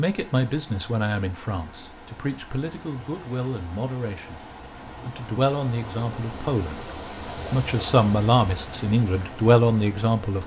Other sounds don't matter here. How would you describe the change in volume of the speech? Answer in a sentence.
The volume of the speech goes up.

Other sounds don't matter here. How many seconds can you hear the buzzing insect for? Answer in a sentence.
The buzzing insect can't be heard in this clip.